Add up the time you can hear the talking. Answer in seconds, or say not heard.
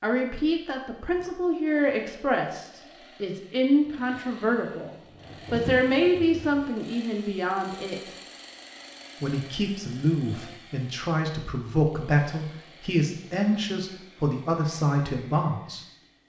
15 s.